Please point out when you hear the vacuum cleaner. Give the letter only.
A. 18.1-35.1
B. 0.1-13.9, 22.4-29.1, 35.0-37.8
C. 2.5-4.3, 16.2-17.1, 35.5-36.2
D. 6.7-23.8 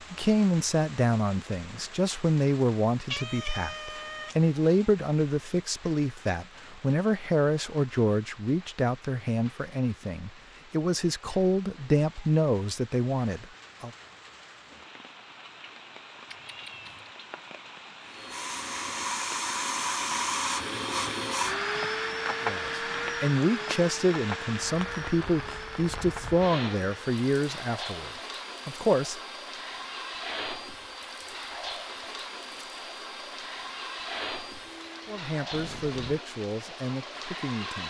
A.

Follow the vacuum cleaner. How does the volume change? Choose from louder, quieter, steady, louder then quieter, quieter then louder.
quieter.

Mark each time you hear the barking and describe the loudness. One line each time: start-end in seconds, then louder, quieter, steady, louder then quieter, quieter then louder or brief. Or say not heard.
not heard.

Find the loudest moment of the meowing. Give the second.
3 s.